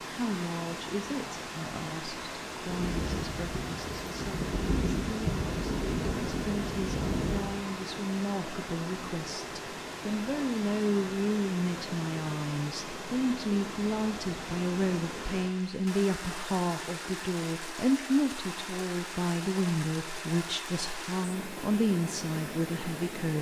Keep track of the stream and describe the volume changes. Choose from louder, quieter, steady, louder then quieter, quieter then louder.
steady.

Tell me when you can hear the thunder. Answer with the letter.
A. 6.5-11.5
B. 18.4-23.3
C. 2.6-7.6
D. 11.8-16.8
C.